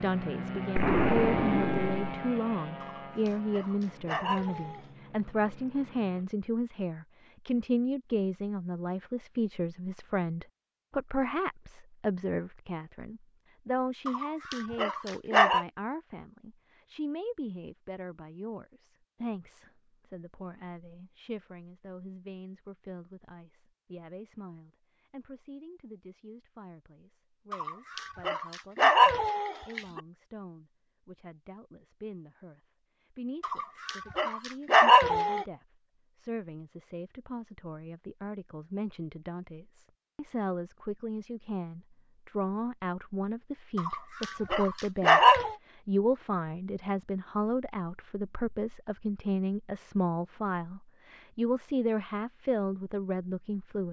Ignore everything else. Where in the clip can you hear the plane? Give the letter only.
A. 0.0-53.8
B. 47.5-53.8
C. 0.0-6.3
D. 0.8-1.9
C.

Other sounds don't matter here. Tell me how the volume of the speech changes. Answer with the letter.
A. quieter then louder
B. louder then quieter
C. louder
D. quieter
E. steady
A.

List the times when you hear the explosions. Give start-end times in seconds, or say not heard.
0.8-1.9.